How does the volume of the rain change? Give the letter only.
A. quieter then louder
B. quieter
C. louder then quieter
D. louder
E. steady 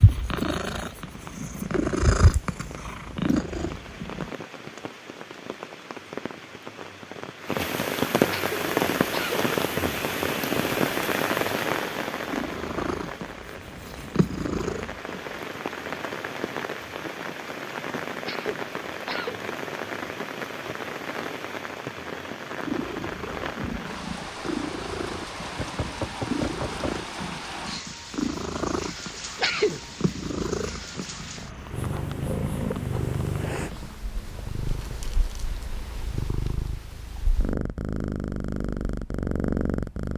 C.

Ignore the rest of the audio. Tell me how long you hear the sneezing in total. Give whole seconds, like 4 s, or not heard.
3 s.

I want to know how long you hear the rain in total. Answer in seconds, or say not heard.
34 s.